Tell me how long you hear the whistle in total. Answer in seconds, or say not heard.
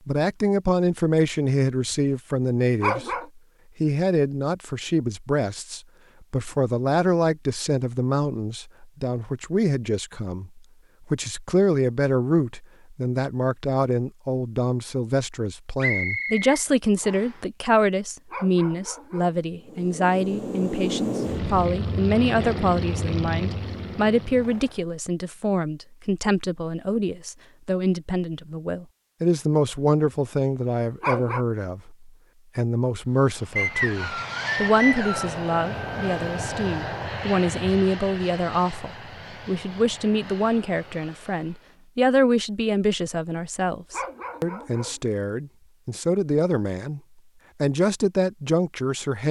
3 s.